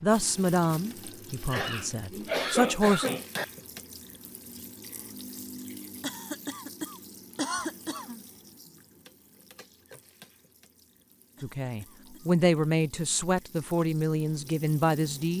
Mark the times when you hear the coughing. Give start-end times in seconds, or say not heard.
1.4-3.5, 6.0-8.2, 11.3-12.3.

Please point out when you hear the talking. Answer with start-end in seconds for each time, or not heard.
0.0-3.1, 11.4-15.3.